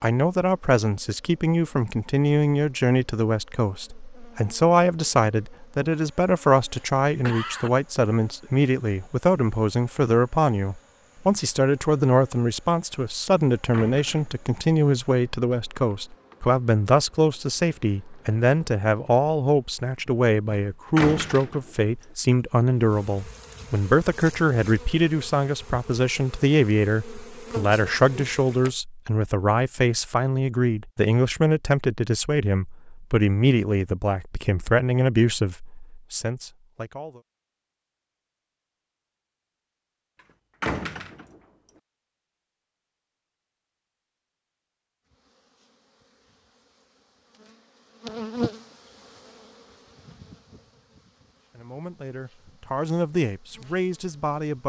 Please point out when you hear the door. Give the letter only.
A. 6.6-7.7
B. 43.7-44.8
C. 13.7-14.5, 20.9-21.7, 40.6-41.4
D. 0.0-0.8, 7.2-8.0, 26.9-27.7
C.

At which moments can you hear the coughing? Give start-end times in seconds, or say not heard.
6.6-7.7.